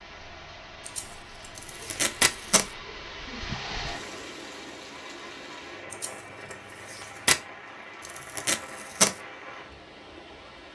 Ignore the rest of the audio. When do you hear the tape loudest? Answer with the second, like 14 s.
9 s.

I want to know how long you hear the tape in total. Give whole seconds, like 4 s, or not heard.
2 s.